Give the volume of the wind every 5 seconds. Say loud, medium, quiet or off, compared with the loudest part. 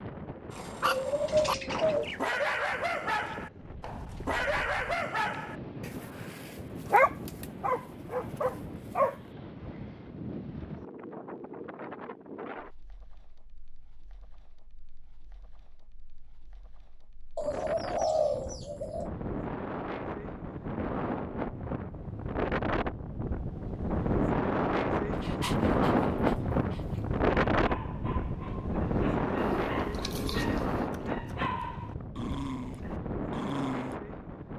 quiet, quiet, quiet, quiet, loud, loud, medium.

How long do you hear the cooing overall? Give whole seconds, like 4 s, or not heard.
5 s.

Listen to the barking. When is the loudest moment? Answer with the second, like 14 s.
7 s.